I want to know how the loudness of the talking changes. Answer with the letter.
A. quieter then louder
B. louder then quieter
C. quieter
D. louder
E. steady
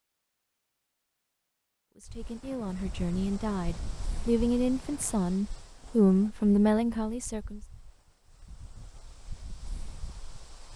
D.